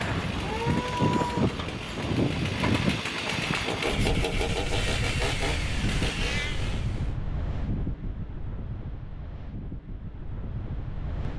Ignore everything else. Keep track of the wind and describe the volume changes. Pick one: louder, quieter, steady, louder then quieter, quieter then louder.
quieter.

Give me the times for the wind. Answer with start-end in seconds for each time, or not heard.
0.0-11.3.